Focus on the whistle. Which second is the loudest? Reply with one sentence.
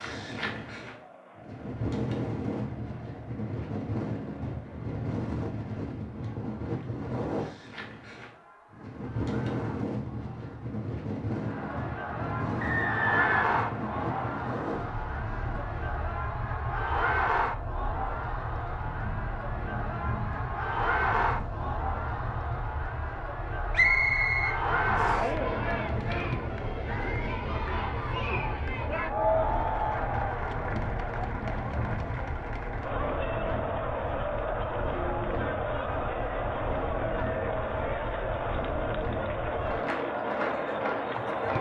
The loudest moment of the whistle is at 24 seconds.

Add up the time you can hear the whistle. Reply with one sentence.
You can hear the whistle for 3 seconds altogether.